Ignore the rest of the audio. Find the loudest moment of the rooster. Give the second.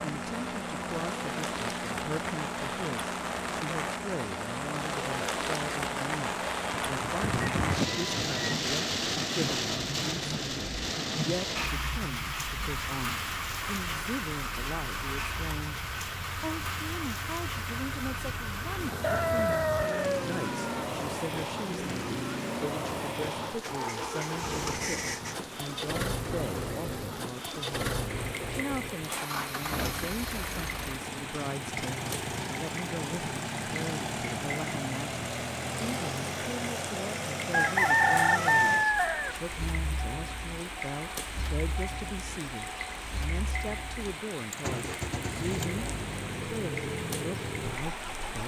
38 s.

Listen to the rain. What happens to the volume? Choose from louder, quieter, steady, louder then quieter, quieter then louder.
quieter.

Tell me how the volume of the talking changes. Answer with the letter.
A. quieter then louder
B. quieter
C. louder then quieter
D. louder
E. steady
E.